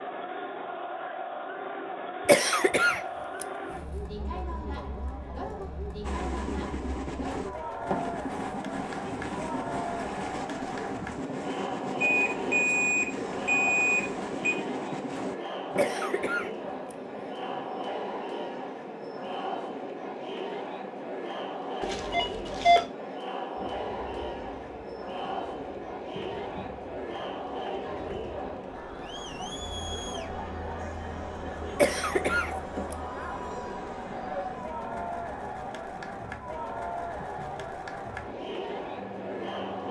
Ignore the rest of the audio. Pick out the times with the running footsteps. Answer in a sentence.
You can't hear the running footsteps here.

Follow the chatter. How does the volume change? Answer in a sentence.
The volume of the chatter stays about the same.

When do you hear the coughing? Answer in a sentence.
You can hear the coughing from 2.2 to 3.5 s, from 15.8 to 16.9 s and from 31.8 to 33.0 s.